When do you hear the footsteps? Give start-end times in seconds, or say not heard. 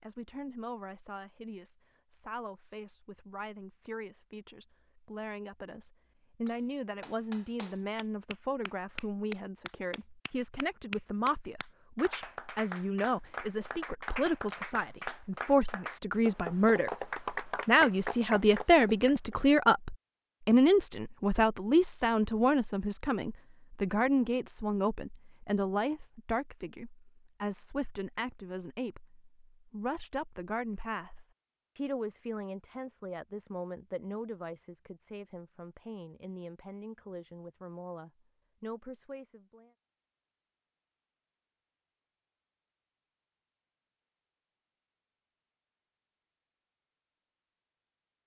not heard.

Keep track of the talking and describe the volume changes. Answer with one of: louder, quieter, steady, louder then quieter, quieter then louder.
louder then quieter.